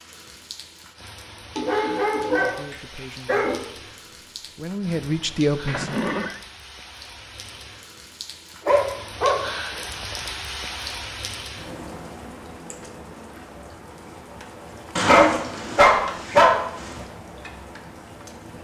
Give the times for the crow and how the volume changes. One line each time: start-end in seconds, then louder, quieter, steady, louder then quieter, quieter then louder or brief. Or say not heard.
not heard.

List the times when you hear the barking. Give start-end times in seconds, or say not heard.
1.6-3.5, 8.7-9.3, 14.9-17.0.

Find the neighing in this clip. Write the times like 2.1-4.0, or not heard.
5.7-6.4.